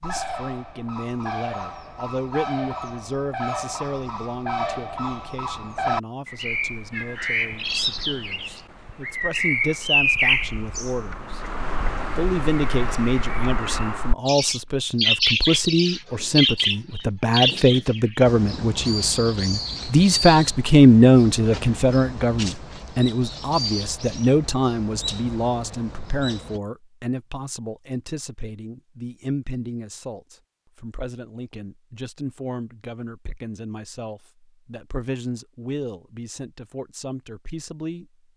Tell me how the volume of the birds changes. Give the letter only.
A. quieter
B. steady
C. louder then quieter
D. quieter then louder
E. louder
C.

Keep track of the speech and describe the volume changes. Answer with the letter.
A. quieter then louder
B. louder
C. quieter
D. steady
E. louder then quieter
E.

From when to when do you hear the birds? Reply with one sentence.
You can hear the birds from 0.0 to 26.6 s.